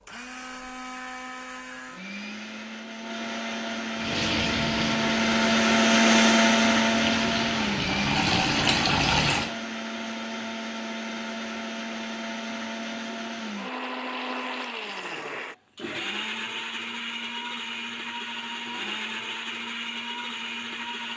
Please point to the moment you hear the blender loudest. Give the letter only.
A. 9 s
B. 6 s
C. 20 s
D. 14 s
B.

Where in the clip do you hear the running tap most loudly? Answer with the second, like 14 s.
9 s.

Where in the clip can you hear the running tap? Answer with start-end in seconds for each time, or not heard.
4.0-9.6.